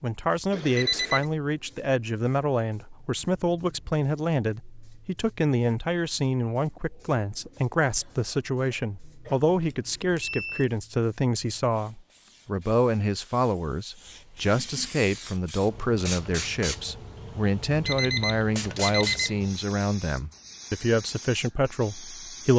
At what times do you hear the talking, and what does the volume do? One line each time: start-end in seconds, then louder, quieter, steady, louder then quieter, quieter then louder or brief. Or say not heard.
0.0-22.5 steady.